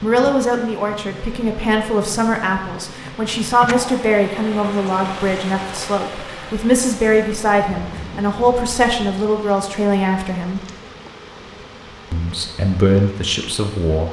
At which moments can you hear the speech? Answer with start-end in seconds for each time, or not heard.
0.0-10.7, 12.1-14.0.